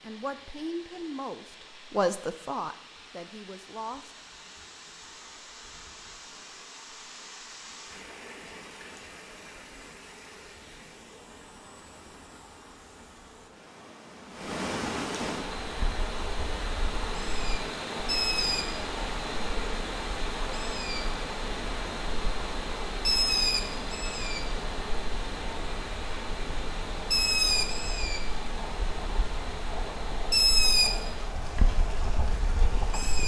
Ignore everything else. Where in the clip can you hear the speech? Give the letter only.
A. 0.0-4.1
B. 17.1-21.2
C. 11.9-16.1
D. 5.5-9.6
A.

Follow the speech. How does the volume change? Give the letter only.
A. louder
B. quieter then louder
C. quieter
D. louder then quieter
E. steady
D.